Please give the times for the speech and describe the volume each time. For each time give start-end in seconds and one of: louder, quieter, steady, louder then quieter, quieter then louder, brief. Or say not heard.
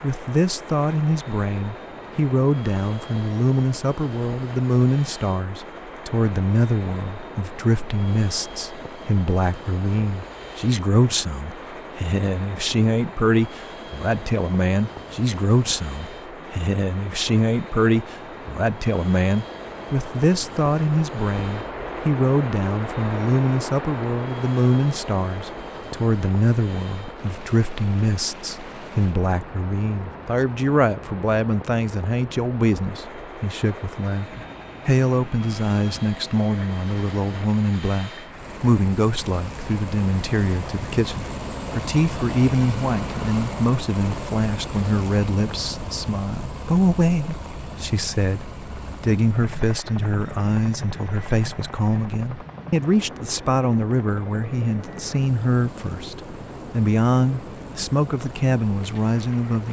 0.0-59.6 steady.